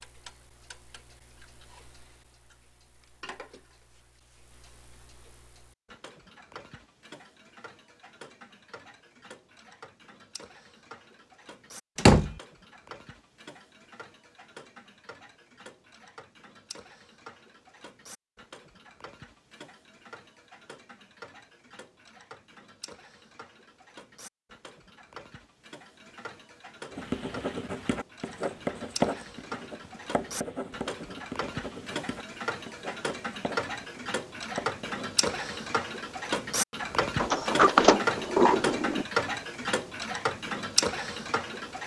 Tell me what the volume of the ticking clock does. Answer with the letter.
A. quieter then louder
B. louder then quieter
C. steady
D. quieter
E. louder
E.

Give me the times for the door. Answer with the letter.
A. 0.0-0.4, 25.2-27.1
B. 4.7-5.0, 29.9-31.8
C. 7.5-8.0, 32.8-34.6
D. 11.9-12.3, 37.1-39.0
D.